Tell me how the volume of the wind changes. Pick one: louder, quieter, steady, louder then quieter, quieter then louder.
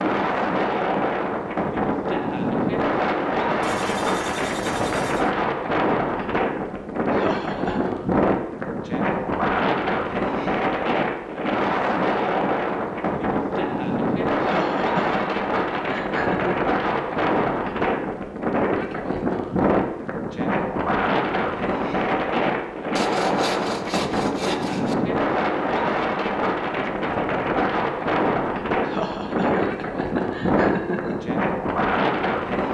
steady.